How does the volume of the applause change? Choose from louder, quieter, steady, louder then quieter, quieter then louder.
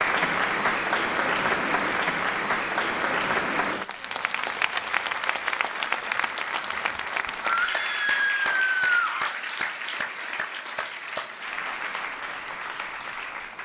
quieter.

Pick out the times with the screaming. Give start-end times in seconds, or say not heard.
7.4-9.3.